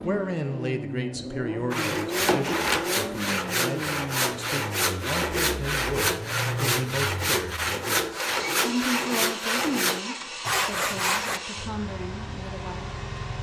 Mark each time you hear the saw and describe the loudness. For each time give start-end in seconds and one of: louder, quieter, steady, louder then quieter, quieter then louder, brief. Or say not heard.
1.7-11.4 steady.